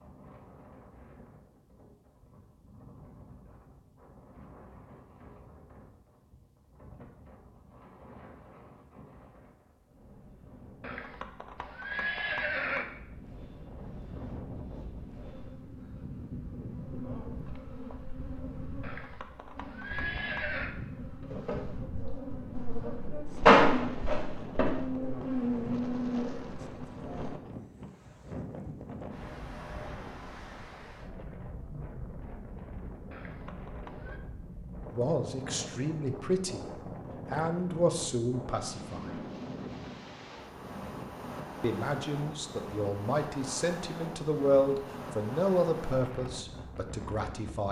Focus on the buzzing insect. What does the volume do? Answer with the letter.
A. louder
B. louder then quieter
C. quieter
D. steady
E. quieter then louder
B.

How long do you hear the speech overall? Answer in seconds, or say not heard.
10 s.